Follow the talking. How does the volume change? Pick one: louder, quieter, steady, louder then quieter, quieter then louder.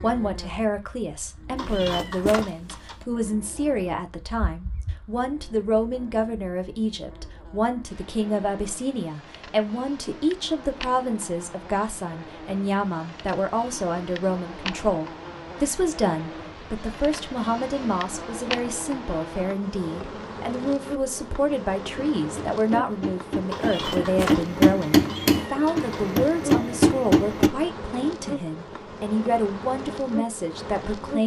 steady.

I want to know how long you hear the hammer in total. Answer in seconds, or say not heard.
5 s.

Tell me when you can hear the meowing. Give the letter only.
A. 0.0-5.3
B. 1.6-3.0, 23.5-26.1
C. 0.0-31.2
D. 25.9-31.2
B.